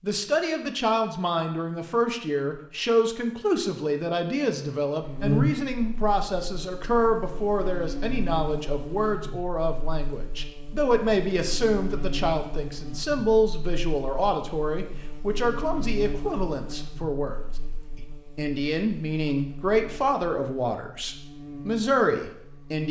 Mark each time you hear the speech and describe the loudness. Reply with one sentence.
You can hear the speech from 0.0 to 22.8 s, at a steady volume.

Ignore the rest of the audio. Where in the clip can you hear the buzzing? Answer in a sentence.
You can hear the buzzing from 5.0 to 22.8 s.